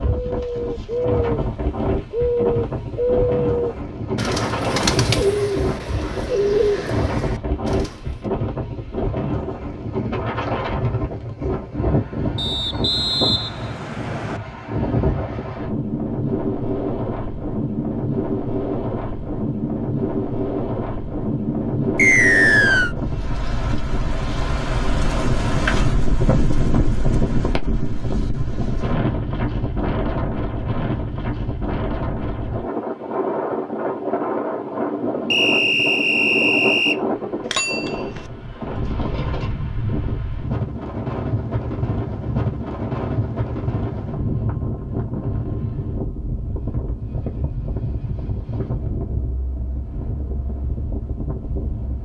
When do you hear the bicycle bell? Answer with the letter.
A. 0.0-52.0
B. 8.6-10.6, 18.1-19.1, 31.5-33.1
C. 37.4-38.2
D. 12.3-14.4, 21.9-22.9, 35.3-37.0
C.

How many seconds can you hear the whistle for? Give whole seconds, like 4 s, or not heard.
5 s.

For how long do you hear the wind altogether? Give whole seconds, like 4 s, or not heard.
52 s.